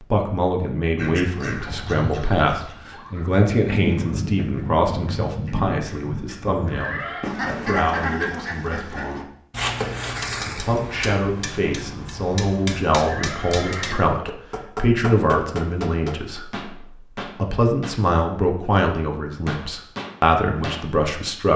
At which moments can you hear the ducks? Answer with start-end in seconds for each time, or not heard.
0.9-11.2.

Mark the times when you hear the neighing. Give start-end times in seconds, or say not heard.
6.7-7.3, 13.0-14.0.